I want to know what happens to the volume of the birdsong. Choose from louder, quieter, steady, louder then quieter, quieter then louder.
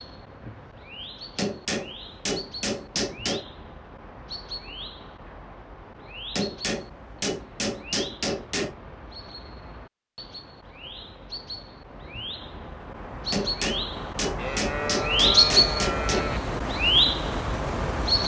louder.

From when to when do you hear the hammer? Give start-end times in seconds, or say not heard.
1.4-3.5, 6.3-8.8, 13.3-16.2.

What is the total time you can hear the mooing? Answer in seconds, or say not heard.
2 s.